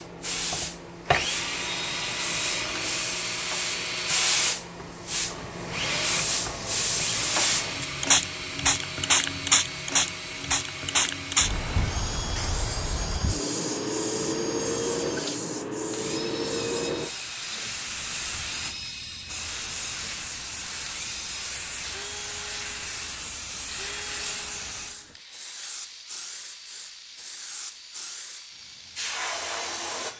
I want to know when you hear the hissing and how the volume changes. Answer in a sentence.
You can hear the hissing from 0.0 to 30.1 s, getting louder then quieter.